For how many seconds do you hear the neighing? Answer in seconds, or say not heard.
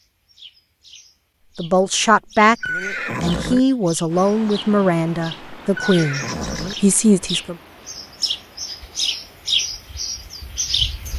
2 s.